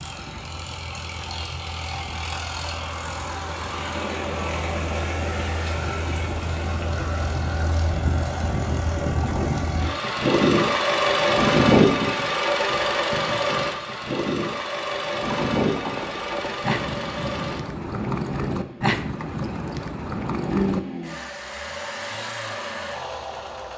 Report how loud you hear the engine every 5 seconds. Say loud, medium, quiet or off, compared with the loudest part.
medium, medium, loud, medium, medium.